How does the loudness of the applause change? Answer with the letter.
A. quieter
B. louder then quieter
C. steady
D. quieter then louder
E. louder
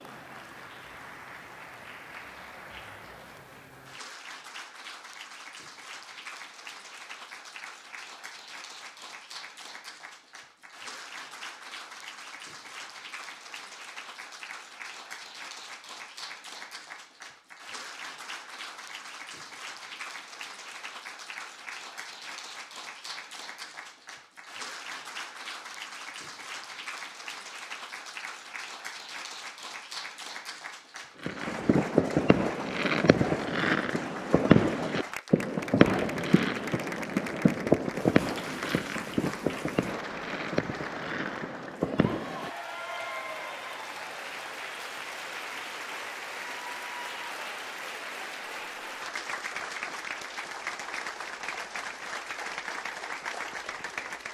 E.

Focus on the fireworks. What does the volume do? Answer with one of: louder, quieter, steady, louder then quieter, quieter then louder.
quieter.